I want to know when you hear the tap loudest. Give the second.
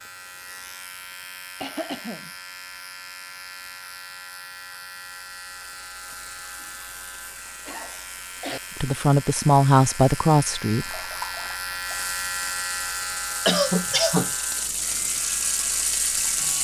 16 s.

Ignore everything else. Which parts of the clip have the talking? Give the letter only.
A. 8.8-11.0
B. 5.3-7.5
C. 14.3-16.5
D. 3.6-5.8
A.